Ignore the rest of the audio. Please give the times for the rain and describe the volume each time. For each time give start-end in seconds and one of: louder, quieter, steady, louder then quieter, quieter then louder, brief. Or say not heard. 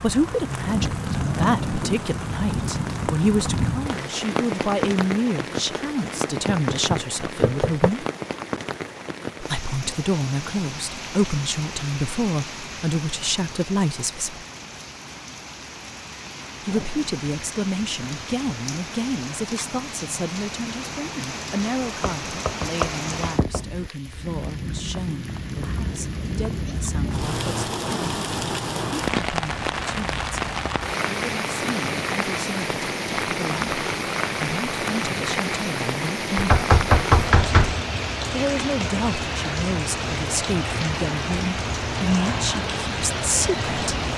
0.0-44.1 quieter then louder.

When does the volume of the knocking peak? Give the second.
37 s.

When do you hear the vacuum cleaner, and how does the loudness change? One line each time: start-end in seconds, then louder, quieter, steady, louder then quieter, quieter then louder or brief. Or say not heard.
not heard.